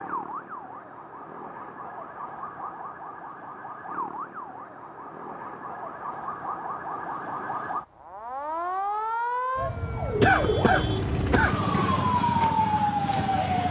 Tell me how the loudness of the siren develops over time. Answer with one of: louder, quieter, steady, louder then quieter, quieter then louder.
louder.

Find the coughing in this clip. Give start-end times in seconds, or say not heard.
10.2-11.6.